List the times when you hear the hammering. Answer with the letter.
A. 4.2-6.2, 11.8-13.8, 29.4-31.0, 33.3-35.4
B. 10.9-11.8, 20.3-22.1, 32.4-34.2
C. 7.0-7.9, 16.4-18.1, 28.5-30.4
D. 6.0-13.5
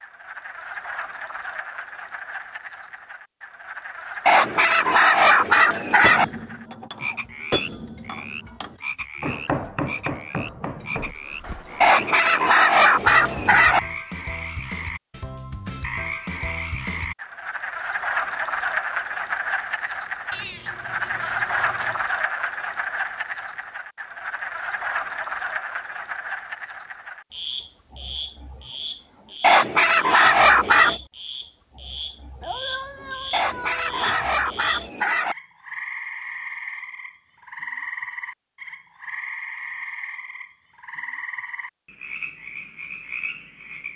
D.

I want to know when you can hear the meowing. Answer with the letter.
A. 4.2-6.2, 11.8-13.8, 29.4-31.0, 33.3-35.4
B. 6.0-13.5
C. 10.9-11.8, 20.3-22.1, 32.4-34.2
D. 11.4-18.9
C.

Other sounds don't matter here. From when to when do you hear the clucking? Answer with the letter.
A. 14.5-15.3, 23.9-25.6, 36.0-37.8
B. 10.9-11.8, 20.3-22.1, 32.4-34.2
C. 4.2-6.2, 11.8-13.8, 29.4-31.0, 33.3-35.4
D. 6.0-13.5
C.